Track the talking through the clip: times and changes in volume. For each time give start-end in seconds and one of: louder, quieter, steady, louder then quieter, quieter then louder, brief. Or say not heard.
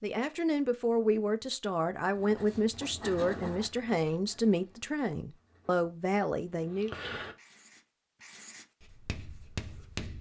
0.0-7.0 steady.